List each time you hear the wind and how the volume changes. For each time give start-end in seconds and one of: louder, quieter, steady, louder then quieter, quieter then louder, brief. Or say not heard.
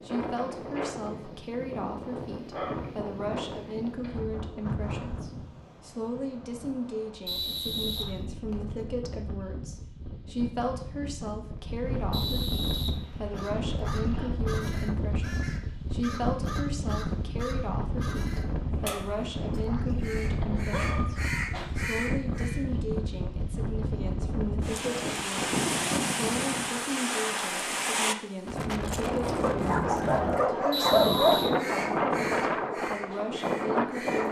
0.0-34.2 louder.